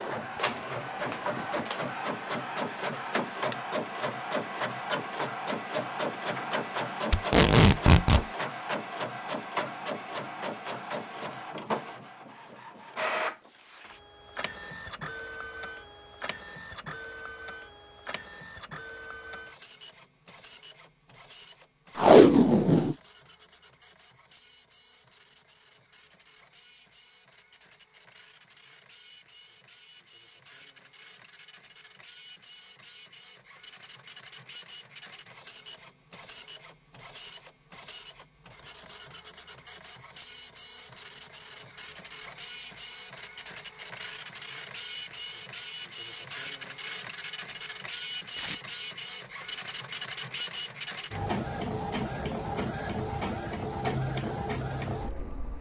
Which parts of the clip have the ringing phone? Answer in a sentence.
The ringing phone can't be heard in this clip.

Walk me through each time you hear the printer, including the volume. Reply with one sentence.
The printer can be heard from 0.0 to 55.5 s, getting quieter then louder.